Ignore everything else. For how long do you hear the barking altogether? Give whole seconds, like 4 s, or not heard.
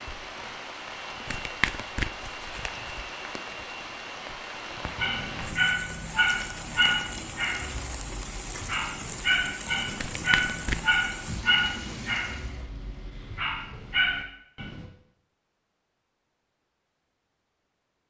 10 s.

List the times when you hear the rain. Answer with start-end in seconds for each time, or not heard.
0.0-12.7.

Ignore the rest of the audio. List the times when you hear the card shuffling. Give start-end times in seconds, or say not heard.
1.2-2.9, 9.9-11.0.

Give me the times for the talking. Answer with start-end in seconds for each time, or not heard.
not heard.